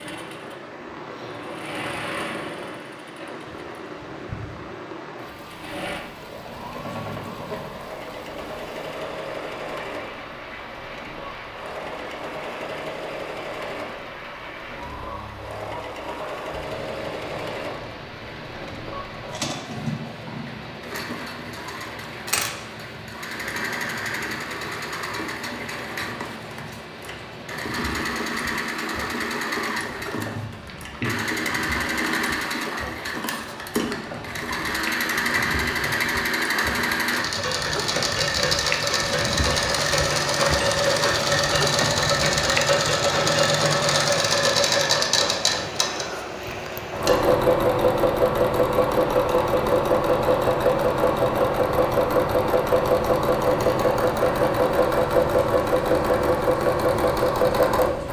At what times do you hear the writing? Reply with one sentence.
The writing can't be heard in this clip.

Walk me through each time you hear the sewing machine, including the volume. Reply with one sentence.
The sewing machine can be heard from 0.0 to 58.0 s, getting louder.